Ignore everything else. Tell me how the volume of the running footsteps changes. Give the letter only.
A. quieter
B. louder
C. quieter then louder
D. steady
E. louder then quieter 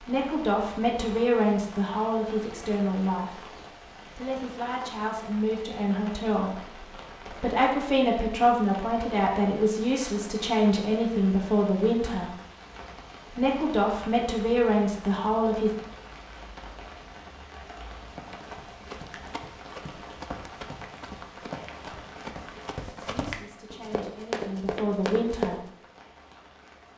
B.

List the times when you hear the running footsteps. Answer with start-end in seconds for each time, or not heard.
18.1-25.6.